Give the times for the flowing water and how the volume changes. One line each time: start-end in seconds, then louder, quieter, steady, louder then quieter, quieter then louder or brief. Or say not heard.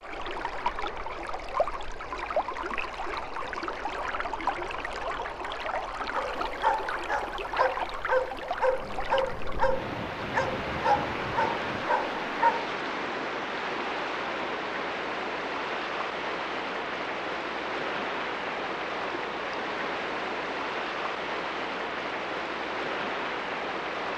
0.0-24.1 steady.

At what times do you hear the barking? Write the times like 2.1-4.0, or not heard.
6.1-12.7.